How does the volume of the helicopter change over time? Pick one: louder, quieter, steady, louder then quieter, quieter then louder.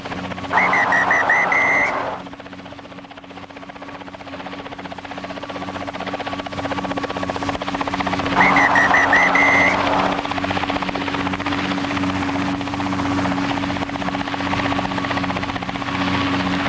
louder.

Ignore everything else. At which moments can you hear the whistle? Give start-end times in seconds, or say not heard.
0.5-2.2, 8.3-10.3.